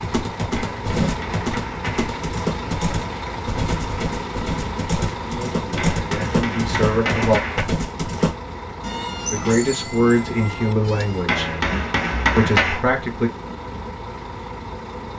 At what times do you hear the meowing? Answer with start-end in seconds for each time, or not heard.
8.8-11.2.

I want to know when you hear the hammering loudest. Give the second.
12 s.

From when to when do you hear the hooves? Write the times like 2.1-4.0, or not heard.
0.0-8.3.